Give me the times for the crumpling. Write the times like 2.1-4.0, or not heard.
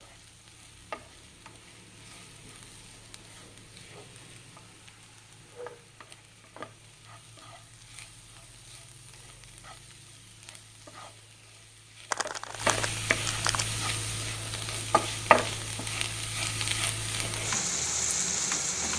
12.1-13.7.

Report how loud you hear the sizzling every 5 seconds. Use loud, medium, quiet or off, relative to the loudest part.
quiet, quiet, medium, loud.